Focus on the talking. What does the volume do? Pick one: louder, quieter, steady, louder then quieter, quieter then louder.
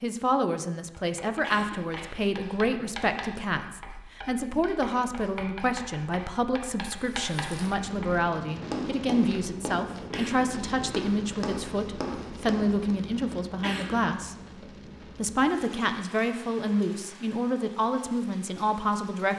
steady.